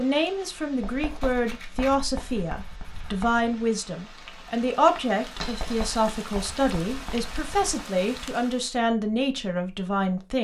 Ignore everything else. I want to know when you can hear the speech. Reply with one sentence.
The speech can be heard from 0.0 to 10.3 s.